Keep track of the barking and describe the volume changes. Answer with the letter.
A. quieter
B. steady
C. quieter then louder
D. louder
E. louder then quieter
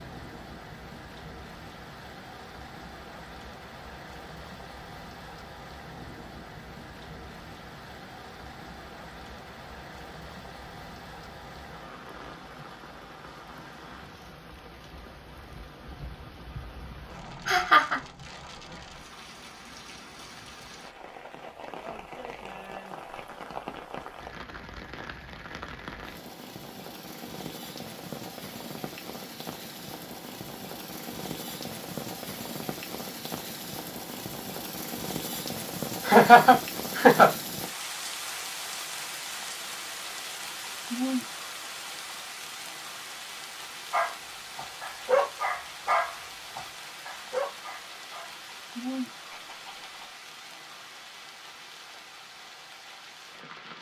A.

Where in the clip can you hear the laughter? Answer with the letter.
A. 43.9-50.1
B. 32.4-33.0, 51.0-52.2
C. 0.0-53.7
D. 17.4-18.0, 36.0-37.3
D.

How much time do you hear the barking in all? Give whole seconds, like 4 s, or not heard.
6 s.